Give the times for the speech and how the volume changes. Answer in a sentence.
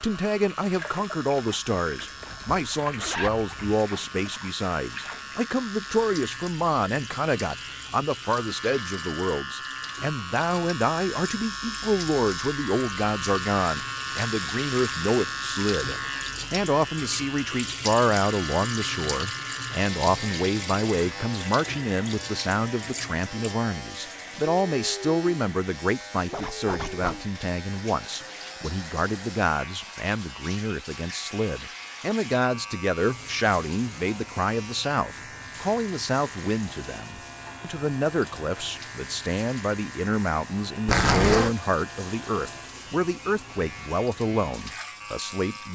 You can hear the speech from 0.0 to 45.7 s, at a steady volume.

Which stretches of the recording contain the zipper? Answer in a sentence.
The zipper can be heard from 2.0 to 3.8 s, from 26.3 to 27.2 s and from 40.9 to 41.5 s.